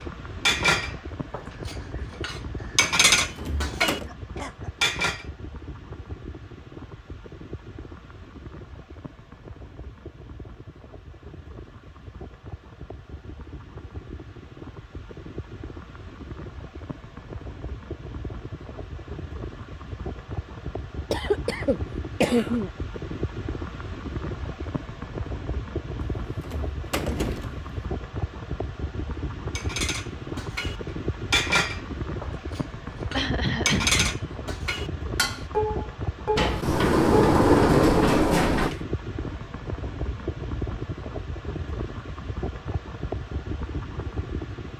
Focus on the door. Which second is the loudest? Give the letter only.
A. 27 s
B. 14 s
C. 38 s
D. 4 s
C.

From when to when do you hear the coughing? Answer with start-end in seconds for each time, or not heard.
3.8-4.7, 21.1-22.7, 33.1-34.1.